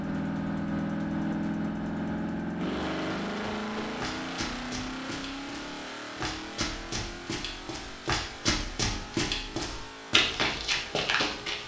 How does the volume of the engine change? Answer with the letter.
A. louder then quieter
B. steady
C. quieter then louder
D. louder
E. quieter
E.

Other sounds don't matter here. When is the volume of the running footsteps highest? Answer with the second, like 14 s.
10 s.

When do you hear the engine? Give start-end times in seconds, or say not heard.
0.0-11.6.